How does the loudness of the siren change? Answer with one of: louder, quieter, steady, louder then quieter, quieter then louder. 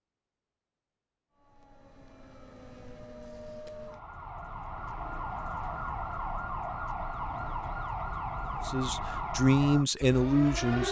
louder.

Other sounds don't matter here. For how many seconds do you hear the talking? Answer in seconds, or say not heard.
2 s.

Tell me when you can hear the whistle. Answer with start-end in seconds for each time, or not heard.
not heard.